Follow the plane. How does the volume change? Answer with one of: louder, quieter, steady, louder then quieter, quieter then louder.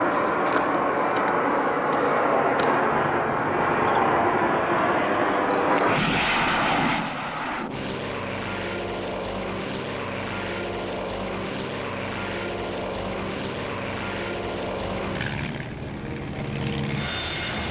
quieter.